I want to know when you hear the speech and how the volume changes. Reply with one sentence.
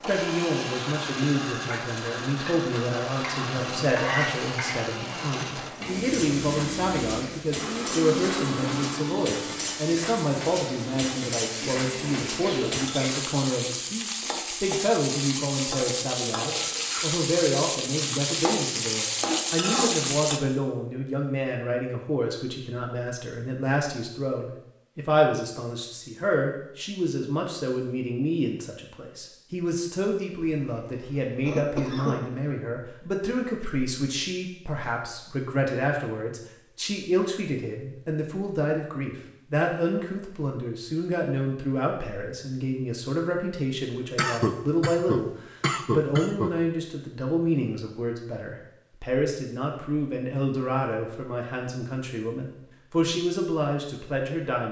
You can hear the speech from 0.1 to 54.6 s, at a steady volume.